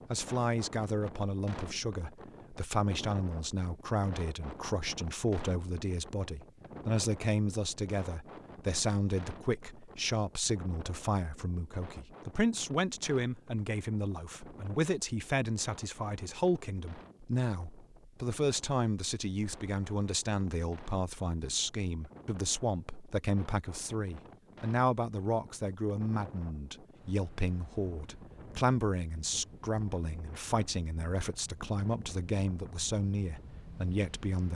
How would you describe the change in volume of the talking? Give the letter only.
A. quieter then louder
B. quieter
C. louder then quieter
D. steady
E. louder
D.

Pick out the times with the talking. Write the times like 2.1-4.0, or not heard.
0.1-34.5.